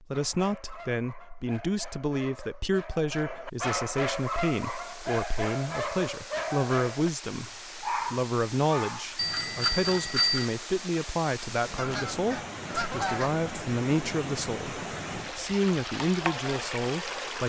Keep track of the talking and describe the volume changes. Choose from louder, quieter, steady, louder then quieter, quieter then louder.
steady.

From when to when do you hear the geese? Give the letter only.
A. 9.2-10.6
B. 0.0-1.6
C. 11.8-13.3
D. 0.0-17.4
C.